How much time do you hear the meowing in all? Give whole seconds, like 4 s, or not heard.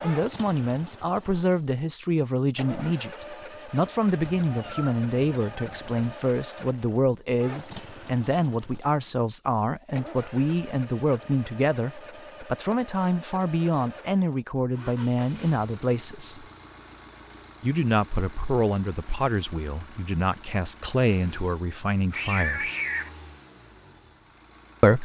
3 s.